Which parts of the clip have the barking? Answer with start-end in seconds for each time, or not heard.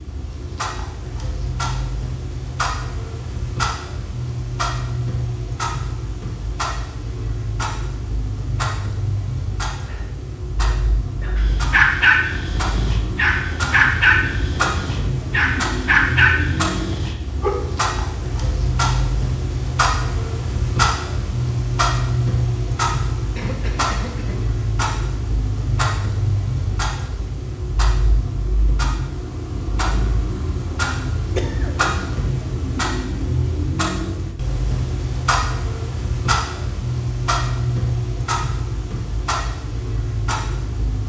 11.3-17.6.